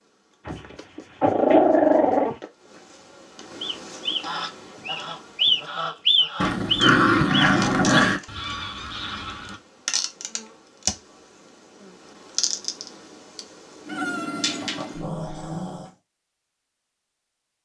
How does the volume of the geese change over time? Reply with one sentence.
The loudness of the geese goes up, then down.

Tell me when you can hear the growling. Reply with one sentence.
The growling can be heard from 0.5 to 2.4 s, from 6.4 to 8.2 s and from 14.3 to 15.8 s.